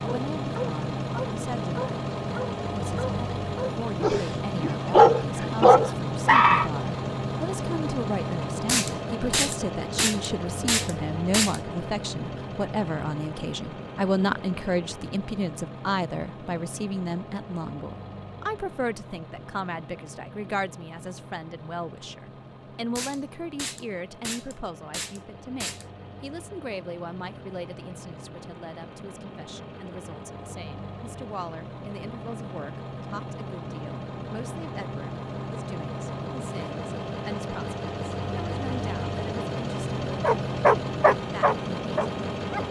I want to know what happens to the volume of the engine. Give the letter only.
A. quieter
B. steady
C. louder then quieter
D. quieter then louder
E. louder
D.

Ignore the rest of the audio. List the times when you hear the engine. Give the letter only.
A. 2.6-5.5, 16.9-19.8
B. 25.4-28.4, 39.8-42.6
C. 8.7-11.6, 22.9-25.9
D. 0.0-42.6
D.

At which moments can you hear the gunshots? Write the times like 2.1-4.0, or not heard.
8.7-11.6, 22.9-25.9.